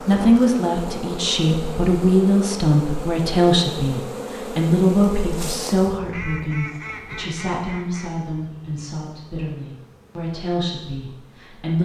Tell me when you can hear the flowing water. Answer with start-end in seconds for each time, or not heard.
not heard.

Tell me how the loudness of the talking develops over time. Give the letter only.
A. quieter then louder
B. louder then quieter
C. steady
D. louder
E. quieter
E.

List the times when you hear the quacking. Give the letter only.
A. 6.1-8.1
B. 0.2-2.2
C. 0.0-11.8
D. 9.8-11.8
A.